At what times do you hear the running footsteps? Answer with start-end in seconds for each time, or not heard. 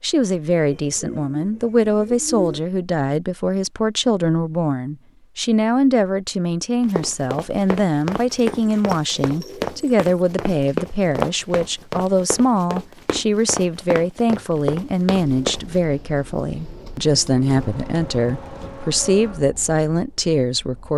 6.8-15.8.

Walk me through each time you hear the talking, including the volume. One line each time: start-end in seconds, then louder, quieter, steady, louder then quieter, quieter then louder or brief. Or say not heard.
0.0-20.9 steady.